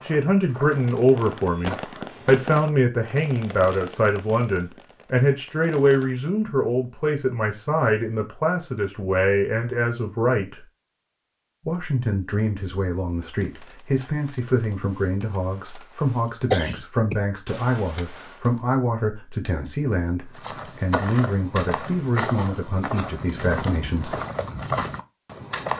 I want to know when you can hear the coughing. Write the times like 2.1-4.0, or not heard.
16.1-17.2.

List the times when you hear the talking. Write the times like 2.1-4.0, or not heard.
0.0-10.7, 11.7-24.1.